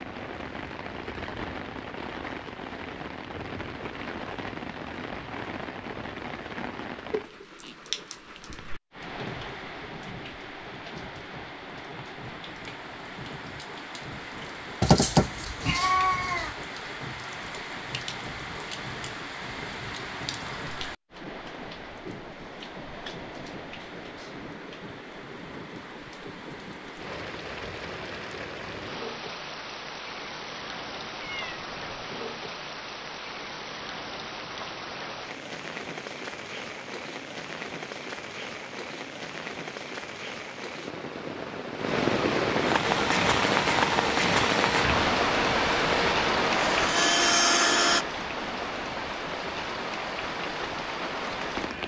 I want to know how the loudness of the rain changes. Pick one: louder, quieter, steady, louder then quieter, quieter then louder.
louder.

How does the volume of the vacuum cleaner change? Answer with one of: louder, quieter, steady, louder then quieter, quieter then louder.
louder.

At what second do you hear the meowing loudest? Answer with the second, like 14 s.
15 s.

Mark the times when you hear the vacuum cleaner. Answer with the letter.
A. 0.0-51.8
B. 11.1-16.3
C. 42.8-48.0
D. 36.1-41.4
C.